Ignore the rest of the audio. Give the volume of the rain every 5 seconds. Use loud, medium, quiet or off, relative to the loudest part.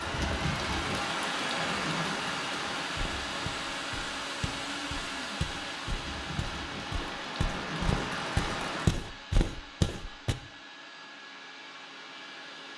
loud, loud, off.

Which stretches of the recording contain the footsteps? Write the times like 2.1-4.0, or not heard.
3.0-10.3.